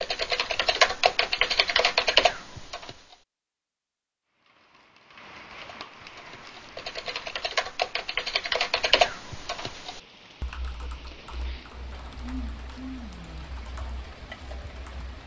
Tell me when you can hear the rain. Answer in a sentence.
You can hear the rain from 4.2 to 15.2 s.